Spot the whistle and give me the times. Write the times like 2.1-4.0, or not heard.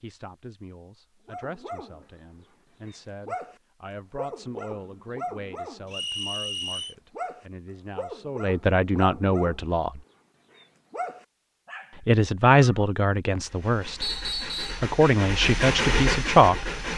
5.9-7.0, 14.0-14.8.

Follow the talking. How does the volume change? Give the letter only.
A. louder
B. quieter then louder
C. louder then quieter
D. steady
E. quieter
A.